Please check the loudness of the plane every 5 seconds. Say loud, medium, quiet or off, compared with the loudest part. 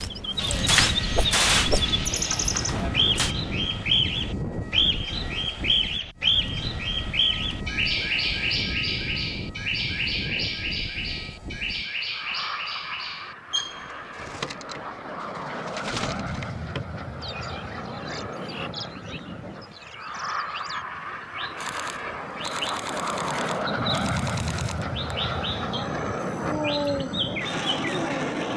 loud, medium, medium, medium, loud, loud.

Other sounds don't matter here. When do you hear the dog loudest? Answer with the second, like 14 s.
27 s.